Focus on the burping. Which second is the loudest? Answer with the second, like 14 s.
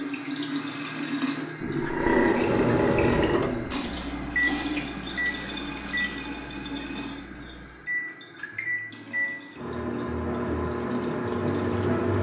2 s.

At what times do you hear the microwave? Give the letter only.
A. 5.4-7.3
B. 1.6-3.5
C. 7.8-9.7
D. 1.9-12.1
D.